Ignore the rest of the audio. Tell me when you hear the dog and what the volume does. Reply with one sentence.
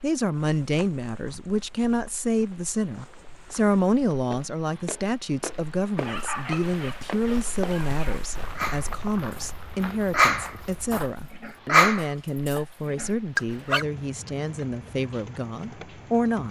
You can hear the dog from 6.0 to 13.8 s, getting louder then quieter.